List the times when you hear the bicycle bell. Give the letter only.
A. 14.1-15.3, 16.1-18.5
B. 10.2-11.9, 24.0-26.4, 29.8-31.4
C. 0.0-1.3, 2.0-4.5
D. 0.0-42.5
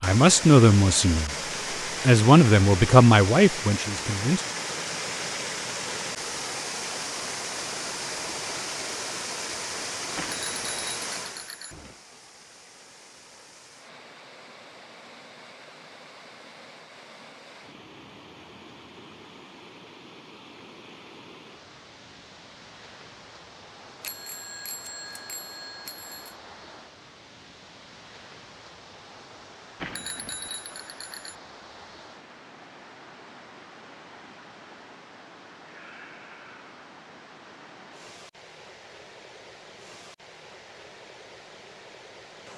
B.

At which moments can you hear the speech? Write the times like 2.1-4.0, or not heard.
0.0-1.3, 2.0-4.5.